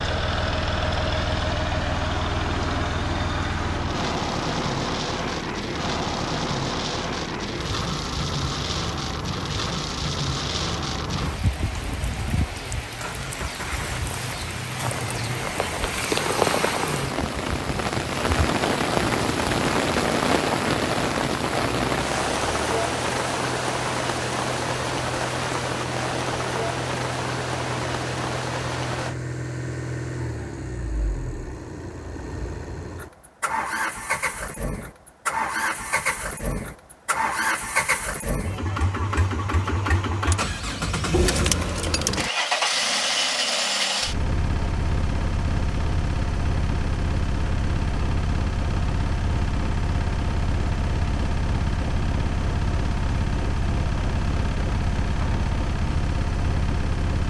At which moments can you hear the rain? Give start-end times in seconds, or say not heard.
0.0-29.1.